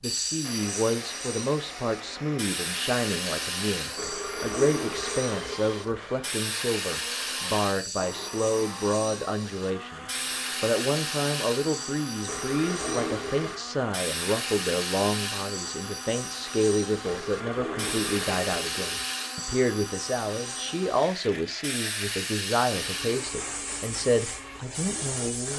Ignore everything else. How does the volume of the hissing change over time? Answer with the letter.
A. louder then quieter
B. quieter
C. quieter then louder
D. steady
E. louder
D.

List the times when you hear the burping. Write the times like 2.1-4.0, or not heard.
4.0-6.0, 12.2-13.6, 17.0-19.1.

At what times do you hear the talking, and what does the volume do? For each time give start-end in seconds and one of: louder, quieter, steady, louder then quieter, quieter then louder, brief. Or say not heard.
0.0-25.5 steady.